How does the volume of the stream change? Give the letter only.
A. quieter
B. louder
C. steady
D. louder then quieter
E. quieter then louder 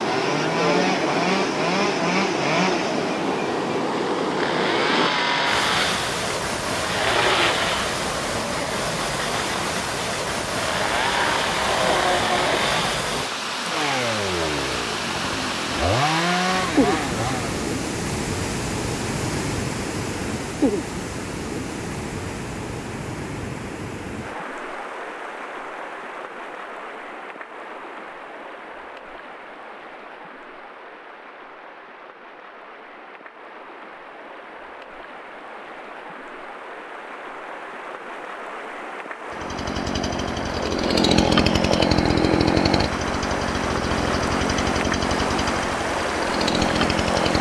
E.